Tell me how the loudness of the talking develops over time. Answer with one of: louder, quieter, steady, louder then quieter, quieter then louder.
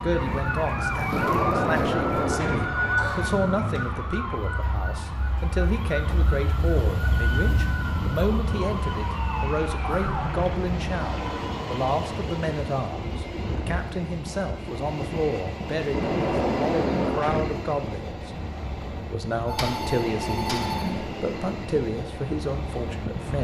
steady.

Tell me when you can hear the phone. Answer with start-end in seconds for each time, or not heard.
2.1-3.8, 19.4-21.1.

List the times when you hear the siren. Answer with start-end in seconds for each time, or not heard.
0.0-10.4.